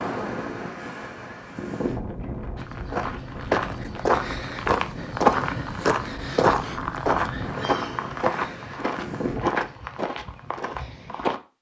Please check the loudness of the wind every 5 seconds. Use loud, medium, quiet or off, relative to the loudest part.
loud, loud, off.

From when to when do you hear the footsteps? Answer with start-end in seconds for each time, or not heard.
2.5-11.4.